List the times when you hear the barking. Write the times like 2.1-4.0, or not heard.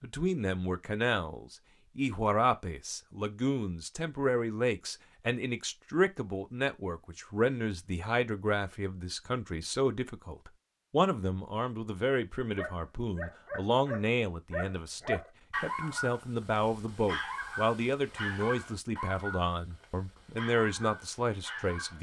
12.6-21.9.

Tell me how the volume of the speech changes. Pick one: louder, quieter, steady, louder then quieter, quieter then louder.
steady.